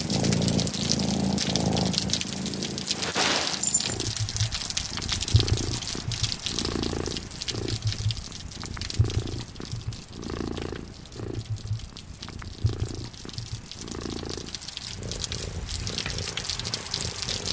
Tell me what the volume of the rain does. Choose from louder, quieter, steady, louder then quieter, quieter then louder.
quieter then louder.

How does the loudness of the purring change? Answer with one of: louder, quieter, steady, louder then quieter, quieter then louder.
quieter.